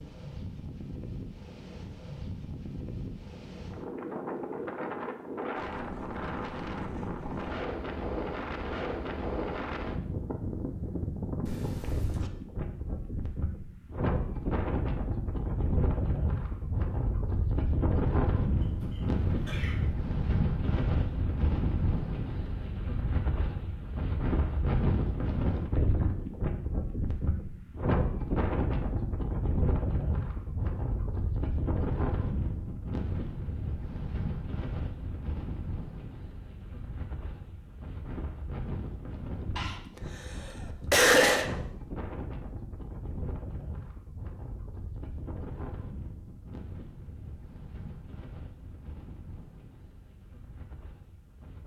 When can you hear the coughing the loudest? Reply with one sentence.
The loudest moment of the coughing is at 41 seconds.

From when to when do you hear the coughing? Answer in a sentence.
The coughing can be heard from 11.4 to 12.3 s, from 18.6 to 19.9 s and from 39.5 to 41.5 s.